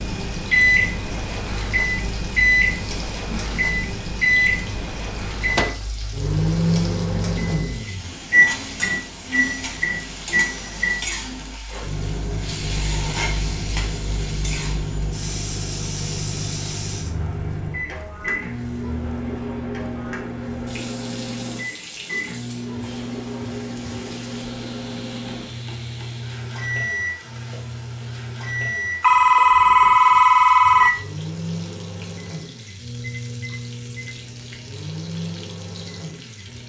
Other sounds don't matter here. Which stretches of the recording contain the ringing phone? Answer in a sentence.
You can hear the ringing phone from 29.0 to 30.9 s.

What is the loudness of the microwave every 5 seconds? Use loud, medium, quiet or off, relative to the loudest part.
loud, loud, medium, medium, medium, medium, medium, quiet.